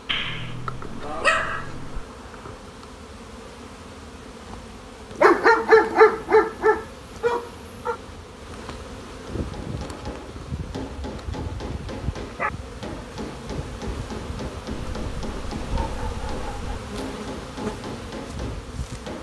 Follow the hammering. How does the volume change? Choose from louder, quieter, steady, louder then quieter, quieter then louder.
steady.